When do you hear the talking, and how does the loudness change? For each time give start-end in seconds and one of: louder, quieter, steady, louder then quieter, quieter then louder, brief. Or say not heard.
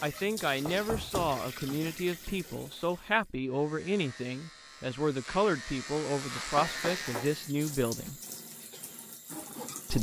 0.0-8.2 steady.